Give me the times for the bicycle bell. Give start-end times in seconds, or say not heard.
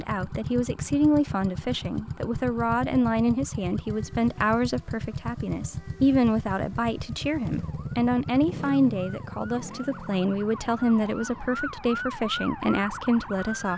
not heard.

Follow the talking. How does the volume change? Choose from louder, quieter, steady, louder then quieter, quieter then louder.
steady.